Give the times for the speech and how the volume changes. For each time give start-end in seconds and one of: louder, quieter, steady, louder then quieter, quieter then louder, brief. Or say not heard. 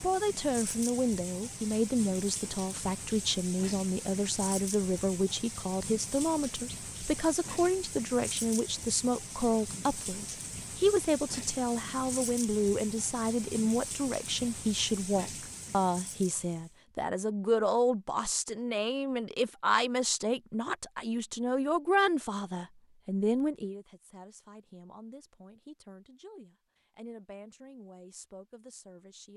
0.0-29.3 quieter.